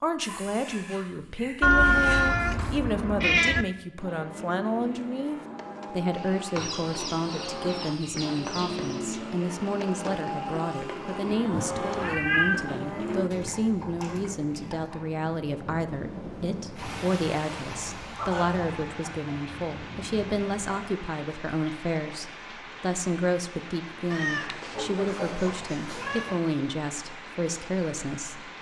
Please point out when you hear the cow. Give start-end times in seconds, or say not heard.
4.0-13.3.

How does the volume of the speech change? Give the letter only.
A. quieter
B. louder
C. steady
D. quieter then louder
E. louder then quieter
C.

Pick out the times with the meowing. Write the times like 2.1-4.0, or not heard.
1.6-3.6, 11.5-12.7, 24.1-26.4.